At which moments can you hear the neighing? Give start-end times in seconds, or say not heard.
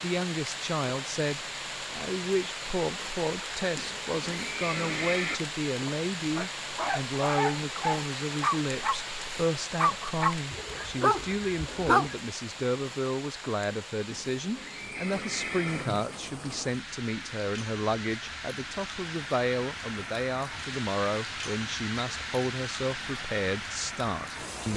3.8-5.4, 14.1-16.2.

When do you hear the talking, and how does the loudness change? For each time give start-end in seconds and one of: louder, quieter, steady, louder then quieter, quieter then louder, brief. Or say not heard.
0.0-24.7 steady.